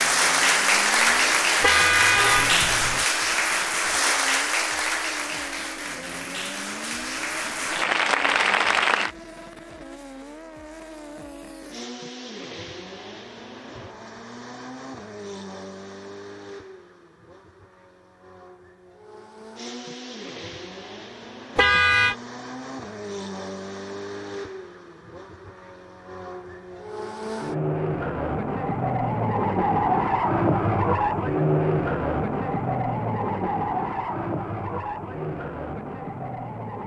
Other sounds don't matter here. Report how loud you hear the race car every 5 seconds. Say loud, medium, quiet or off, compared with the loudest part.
quiet, quiet, quiet, quiet, quiet, loud, loud, medium.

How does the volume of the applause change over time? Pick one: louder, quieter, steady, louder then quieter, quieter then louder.
quieter then louder.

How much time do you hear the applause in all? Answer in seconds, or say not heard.
9 s.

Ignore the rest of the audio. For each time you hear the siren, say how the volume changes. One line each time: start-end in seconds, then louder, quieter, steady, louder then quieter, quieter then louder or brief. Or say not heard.
not heard.